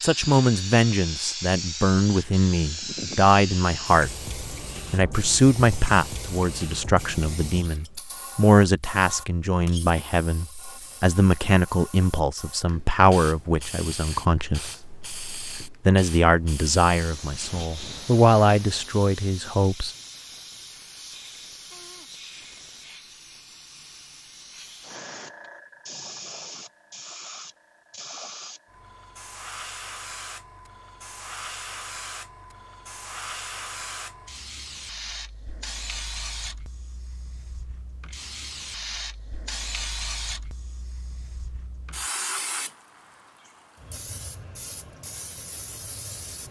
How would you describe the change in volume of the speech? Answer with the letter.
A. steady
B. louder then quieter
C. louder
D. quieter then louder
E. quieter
A.